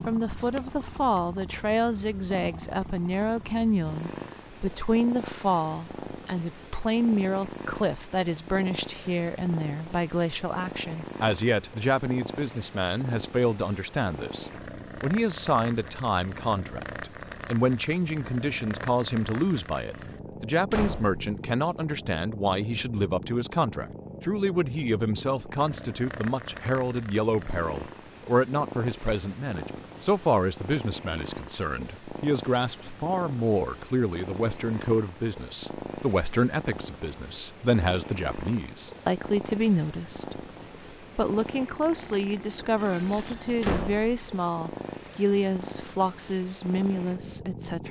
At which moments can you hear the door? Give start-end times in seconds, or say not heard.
20.7-21.4, 43.6-44.1.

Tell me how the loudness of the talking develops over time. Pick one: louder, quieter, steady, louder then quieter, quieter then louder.
steady.